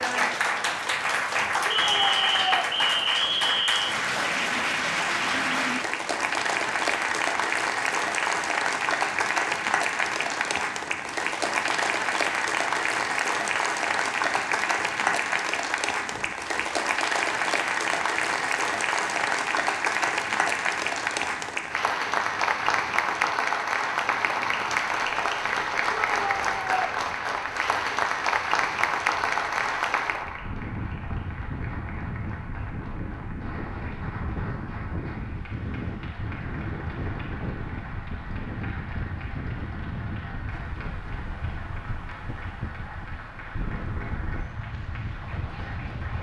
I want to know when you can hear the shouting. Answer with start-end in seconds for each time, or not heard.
1.6-2.7, 25.9-26.9.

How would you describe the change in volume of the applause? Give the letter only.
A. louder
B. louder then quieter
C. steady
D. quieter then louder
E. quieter
E.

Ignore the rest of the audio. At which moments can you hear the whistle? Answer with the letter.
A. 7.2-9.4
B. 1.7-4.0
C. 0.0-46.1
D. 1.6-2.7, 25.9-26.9
B.